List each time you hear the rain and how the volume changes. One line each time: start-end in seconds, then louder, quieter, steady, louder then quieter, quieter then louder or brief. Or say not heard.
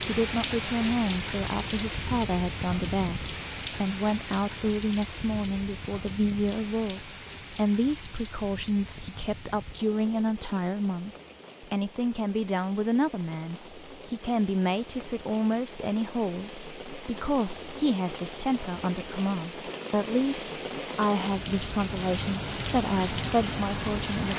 0.0-24.3 quieter then louder.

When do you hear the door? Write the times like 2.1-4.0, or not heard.
not heard.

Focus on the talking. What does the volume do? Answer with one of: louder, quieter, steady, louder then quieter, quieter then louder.
steady.